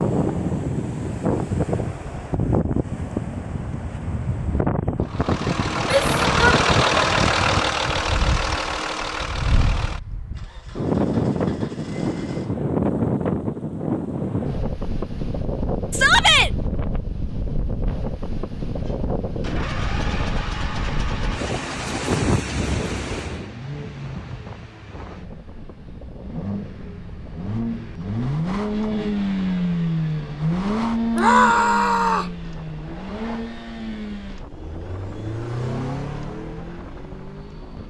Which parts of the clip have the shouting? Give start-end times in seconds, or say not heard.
5.8-6.6, 15.9-16.5, 31.1-32.4.